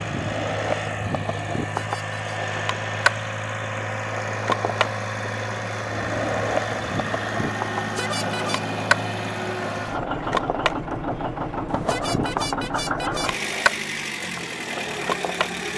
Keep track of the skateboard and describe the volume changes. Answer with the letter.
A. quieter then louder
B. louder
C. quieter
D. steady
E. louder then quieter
D.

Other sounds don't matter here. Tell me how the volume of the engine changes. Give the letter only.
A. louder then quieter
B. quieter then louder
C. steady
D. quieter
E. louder
C.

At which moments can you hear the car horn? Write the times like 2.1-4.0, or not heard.
1.7-2.1, 7.8-8.7, 11.7-13.3.